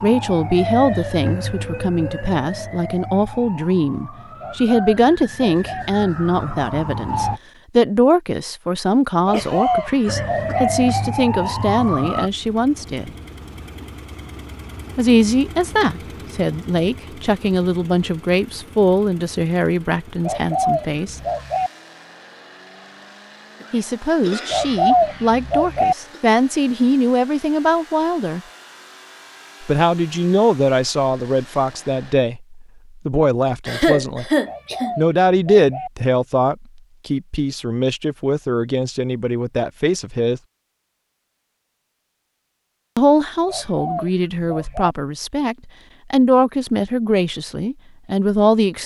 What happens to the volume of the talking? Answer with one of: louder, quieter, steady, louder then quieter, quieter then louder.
steady.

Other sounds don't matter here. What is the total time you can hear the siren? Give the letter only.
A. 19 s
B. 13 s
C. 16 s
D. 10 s
D.